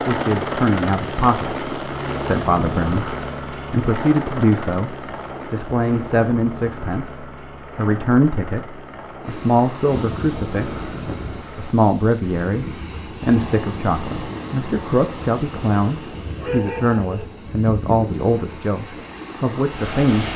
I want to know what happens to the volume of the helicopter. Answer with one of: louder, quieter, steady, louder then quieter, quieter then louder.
quieter.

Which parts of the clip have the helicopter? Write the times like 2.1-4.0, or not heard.
0.0-11.8.